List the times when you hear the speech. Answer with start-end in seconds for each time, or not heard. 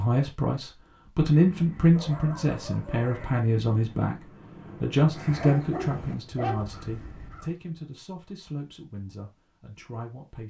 0.0-10.4.